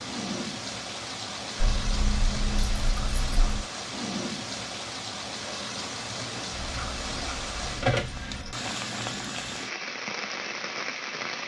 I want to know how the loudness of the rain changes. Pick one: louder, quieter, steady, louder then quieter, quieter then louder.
steady.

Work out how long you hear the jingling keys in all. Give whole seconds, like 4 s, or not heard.
4 s.